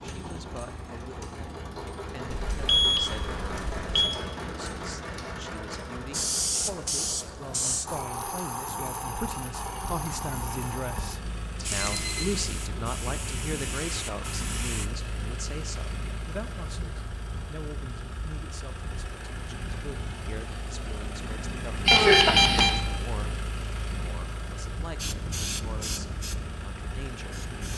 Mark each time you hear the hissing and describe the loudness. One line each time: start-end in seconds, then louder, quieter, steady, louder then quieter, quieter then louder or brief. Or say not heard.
6.1-14.9 quieter
24.9-27.7 brief.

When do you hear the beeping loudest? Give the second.
22 s.